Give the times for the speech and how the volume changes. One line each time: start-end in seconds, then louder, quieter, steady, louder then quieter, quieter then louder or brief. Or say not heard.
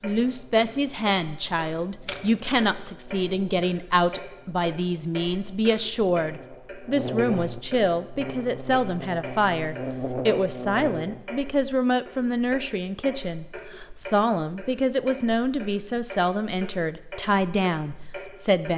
0.0-18.7 steady.